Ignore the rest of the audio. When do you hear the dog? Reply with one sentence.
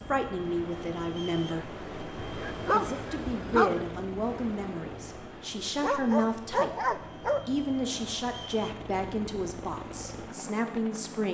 You can hear the dog from 2.2 to 3.8 s and from 5.8 to 7.5 s.